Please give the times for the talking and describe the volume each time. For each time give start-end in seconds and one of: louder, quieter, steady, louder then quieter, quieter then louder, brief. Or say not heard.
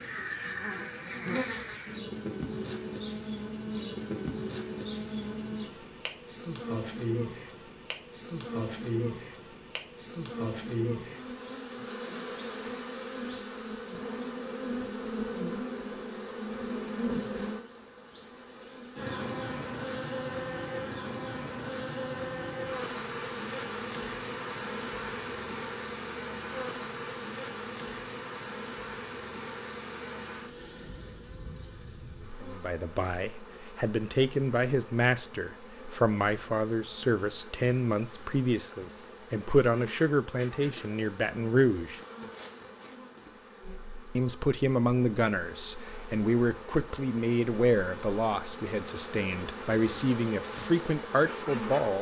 32.4-42.0 steady
44.1-51.9 steady.